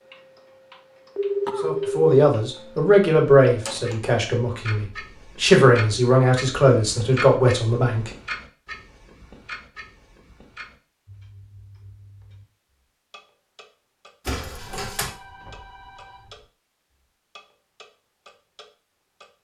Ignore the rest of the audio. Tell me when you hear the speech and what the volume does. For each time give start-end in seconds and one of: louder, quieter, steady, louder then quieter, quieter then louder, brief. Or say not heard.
1.6-8.1 quieter then louder.